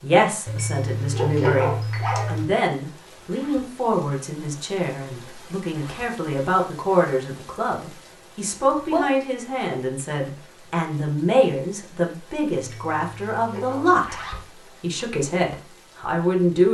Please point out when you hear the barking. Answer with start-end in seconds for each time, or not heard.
0.5-2.5, 12.6-14.1.